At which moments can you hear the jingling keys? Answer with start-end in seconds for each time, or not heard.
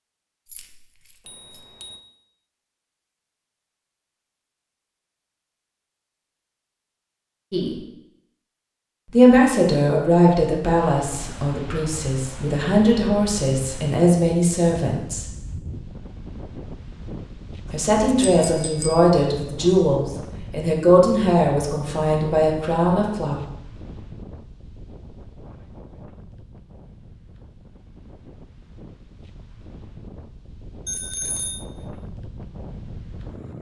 0.5-1.7.